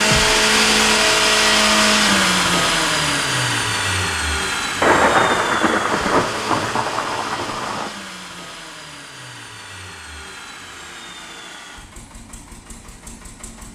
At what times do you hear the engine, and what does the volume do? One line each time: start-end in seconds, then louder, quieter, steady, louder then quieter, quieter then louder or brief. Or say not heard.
0.0-13.7 quieter.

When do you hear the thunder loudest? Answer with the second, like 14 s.
5 s.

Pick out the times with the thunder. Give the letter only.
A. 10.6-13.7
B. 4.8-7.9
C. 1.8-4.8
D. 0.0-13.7
B.